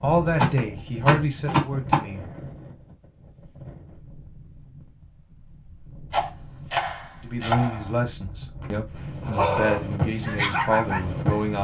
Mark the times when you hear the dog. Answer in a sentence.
You can hear the dog from 9.2 to 11.2 s.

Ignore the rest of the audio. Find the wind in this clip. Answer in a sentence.
You can hear the wind from 0.0 to 11.6 s.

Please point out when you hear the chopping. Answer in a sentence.
You can hear the chopping from 0.3 to 2.0 s and from 6.1 to 8.0 s.